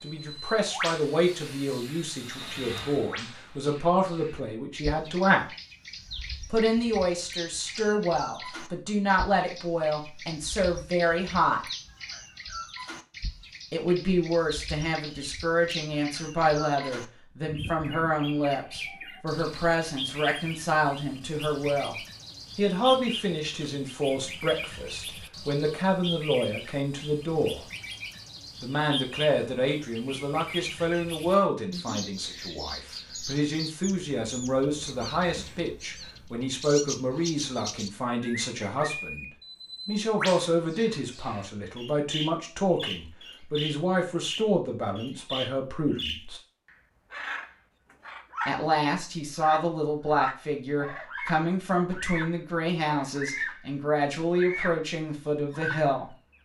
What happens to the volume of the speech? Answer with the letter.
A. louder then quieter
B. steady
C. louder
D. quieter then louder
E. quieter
B.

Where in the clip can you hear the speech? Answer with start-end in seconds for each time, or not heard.
0.0-5.5, 6.5-11.6, 13.7-21.9, 22.6-27.6, 28.6-46.4, 48.5-56.1.